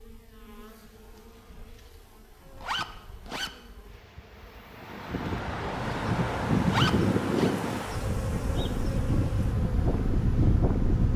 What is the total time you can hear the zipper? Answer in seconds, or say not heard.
2 s.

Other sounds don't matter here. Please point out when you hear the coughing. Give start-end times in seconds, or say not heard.
not heard.